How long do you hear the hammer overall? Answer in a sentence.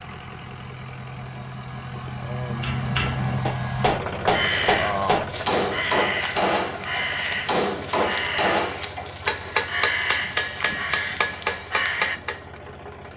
The hammer can be heard for 10 seconds in total.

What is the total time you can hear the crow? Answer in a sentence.
The crow can be heard for 8 seconds in total.